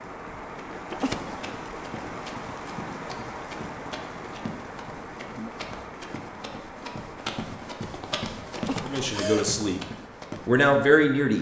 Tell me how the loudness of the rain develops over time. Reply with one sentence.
The volume of the rain goes down.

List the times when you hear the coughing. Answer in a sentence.
The coughing can be heard from 0.9 to 1.5 s and from 8.6 to 9.5 s.